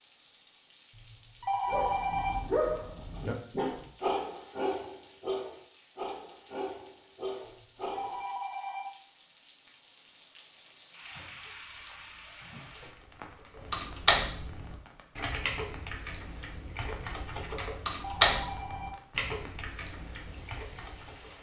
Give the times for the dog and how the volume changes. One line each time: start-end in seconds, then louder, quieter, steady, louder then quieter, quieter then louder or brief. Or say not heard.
1.6-8.2 quieter.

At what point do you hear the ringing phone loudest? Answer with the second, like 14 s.
2 s.